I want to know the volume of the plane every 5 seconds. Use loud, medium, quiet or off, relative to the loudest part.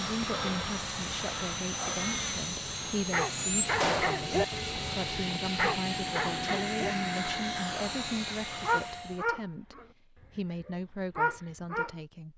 loud, loud, off.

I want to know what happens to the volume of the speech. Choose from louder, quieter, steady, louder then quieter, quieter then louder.
steady.